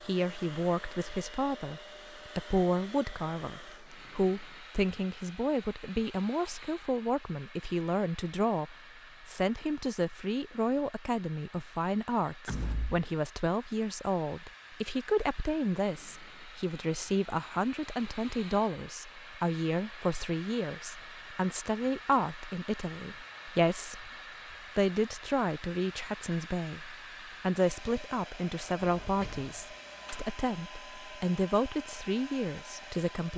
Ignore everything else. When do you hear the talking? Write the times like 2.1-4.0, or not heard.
0.0-24.1, 24.8-33.3.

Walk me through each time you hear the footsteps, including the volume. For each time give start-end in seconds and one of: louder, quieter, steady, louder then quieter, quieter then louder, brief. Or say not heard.
not heard.